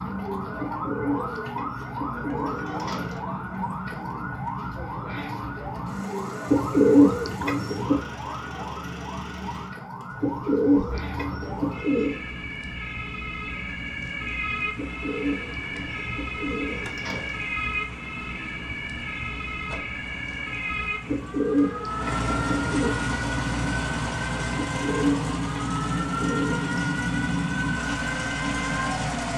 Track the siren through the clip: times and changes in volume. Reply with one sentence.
You can hear the siren from 0.0 to 29.1 s, at a steady volume.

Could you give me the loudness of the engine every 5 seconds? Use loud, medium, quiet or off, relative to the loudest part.
quiet, quiet, quiet, quiet, loud, loud.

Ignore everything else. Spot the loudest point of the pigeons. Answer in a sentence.
The loudest moment of the pigeons is at 7 seconds.